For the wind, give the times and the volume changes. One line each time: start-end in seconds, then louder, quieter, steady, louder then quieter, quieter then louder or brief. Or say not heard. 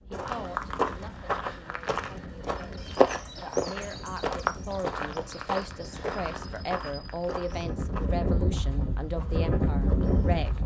0.0-10.6 louder.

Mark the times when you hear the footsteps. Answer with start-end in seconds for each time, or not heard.
0.1-10.6.